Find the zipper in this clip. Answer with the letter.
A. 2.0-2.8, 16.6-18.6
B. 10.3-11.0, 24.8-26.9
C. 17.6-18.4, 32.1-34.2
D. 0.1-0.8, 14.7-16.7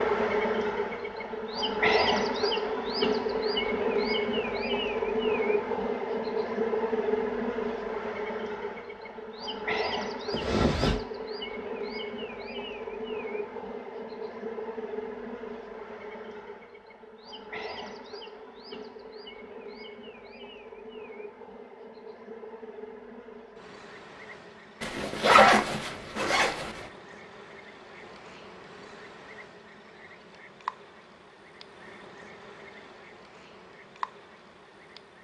B.